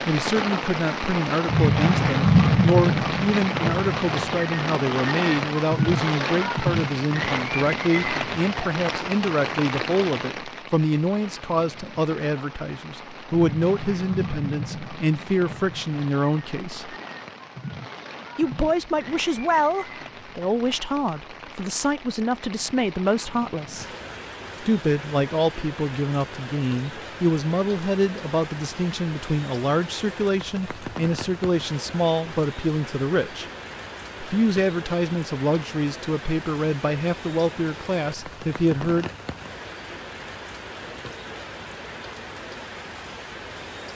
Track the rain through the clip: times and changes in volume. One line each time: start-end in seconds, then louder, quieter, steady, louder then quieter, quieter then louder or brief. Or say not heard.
0.0-43.9 quieter.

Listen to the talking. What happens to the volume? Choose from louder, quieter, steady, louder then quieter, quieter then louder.
steady.